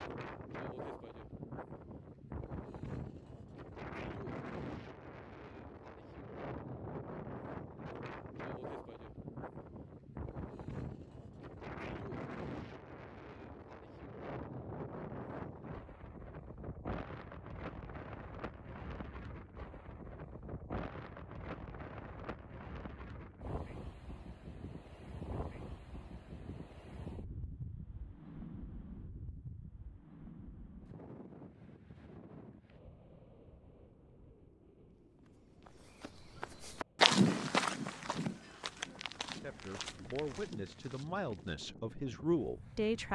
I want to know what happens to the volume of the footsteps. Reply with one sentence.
The volume of the footsteps goes down.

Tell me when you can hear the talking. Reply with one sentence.
The talking can be heard from 39.4 to 43.1 s.